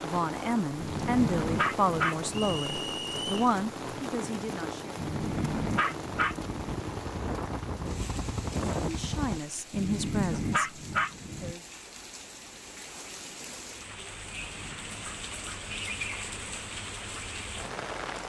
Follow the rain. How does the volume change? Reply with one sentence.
The loudness of the rain goes down, then up.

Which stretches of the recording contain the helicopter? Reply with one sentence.
The helicopter can be heard from 6.2 to 9.4 s.